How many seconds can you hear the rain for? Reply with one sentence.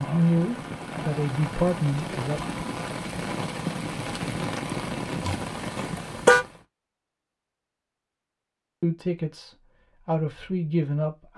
You can hear the rain for 7 seconds altogether.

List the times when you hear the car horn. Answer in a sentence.
You can hear the car horn from 5.2 to 6.5 s.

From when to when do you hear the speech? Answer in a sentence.
You can hear the speech from 0.0 to 2.4 s and from 8.8 to 11.3 s.